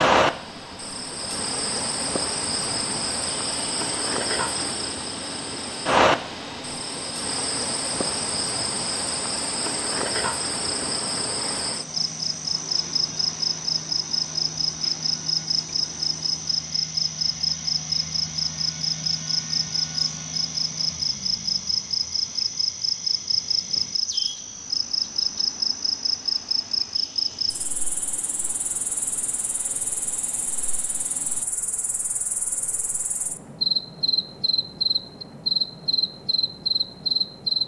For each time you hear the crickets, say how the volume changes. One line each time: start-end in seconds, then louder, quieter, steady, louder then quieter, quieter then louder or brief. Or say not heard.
0.0-37.6 steady.